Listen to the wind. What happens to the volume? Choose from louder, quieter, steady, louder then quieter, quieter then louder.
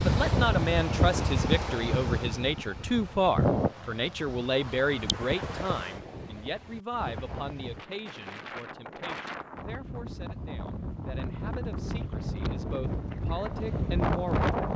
quieter then louder.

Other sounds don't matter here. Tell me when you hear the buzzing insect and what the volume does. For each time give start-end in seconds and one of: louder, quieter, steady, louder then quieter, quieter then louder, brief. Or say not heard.
not heard.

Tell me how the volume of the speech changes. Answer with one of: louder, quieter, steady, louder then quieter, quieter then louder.
quieter then louder.